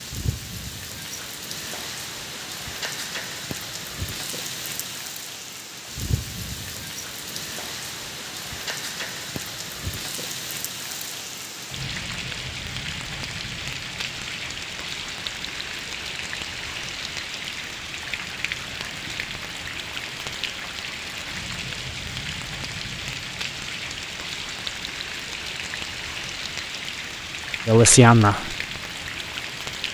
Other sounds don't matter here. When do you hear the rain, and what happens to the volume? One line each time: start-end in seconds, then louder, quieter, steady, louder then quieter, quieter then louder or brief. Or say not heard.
0.0-29.8 steady.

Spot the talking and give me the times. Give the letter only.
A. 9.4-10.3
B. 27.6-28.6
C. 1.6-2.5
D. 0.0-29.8
B.